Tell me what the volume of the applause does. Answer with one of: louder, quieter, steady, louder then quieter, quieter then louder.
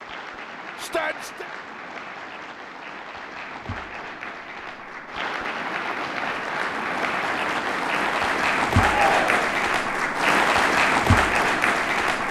louder.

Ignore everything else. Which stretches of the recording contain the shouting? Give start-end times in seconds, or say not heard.
0.8-1.5, 8.8-9.5.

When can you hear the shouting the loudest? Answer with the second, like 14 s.
9 s.